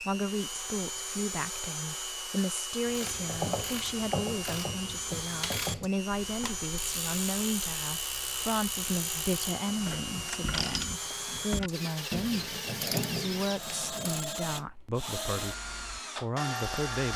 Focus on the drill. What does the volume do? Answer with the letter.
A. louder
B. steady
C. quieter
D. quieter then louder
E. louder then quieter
B.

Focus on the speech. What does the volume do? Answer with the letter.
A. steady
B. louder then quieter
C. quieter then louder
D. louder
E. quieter
A.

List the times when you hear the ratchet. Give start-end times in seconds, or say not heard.
2.9-14.3.